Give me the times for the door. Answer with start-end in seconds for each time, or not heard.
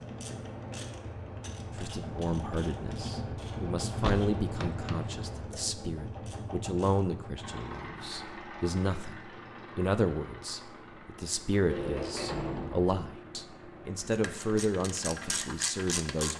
4.0-5.5, 11.7-12.9.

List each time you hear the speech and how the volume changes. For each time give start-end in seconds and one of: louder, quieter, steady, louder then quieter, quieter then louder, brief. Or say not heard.
1.8-16.3 steady.